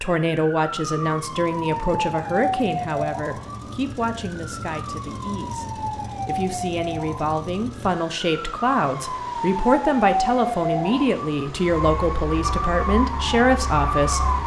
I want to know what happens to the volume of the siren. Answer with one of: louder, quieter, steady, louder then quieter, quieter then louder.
quieter then louder.